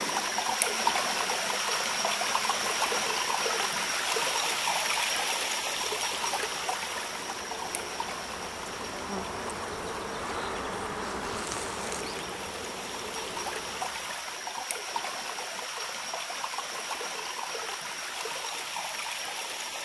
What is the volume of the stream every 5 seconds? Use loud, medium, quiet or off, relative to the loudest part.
loud, medium, medium, medium.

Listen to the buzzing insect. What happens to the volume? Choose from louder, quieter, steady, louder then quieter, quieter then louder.
louder.